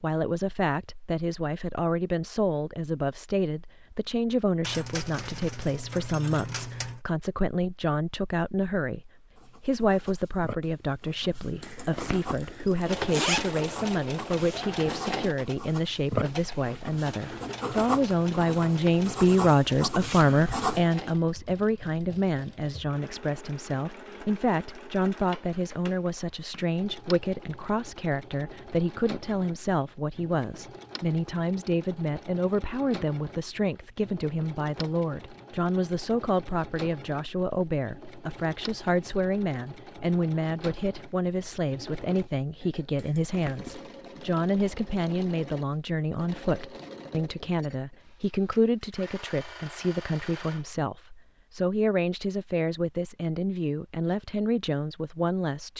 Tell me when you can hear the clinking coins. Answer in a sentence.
You can hear the clinking coins from 4.6 to 7.0 s.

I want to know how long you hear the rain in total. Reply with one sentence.
You can't hear the rain here.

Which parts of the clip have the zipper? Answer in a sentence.
The zipper can be heard from 11.6 to 13.6 s and from 43.0 to 43.9 s.